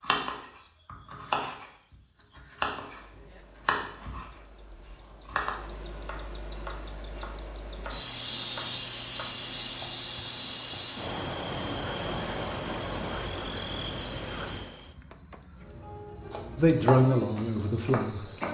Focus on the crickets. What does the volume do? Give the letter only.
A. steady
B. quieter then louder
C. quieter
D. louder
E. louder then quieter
E.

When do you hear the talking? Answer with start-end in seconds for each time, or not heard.
16.6-18.2.